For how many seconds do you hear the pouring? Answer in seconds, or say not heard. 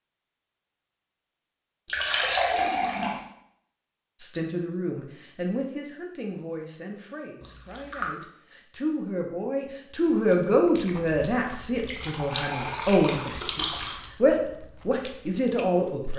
4 s.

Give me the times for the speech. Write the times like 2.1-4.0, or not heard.
4.2-16.1.